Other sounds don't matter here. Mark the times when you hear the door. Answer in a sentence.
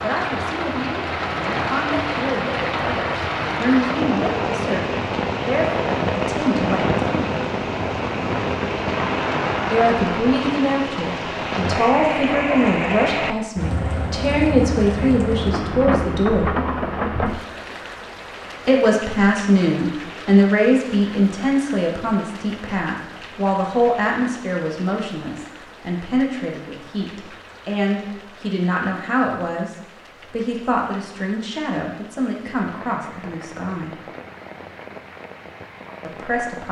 The door can't be heard in this clip.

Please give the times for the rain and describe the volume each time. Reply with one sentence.
You can hear the rain from 0.0 to 36.6 s, getting quieter.